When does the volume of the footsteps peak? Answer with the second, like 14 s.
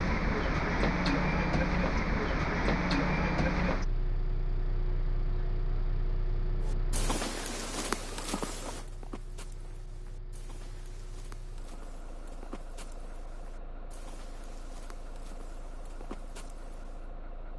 8 s.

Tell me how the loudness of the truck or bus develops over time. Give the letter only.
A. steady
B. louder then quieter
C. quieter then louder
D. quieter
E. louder
D.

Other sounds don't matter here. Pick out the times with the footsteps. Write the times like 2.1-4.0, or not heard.
6.7-17.1.